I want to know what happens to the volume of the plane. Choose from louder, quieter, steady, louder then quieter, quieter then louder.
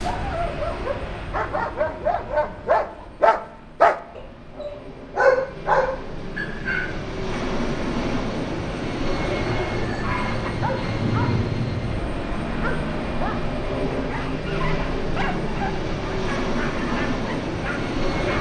louder.